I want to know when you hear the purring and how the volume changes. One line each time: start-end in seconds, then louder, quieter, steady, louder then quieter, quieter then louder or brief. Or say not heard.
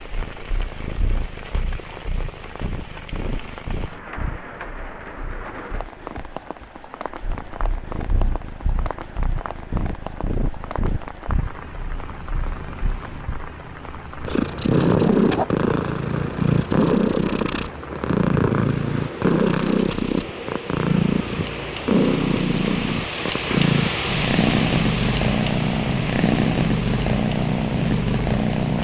0.0-28.8 louder.